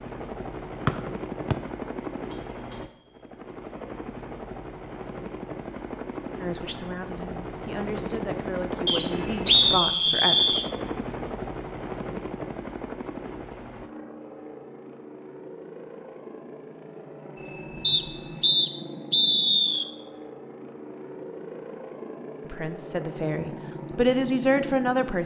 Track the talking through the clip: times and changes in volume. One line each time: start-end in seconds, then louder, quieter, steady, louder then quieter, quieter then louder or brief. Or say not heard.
6.4-10.4 louder
22.5-25.2 brief.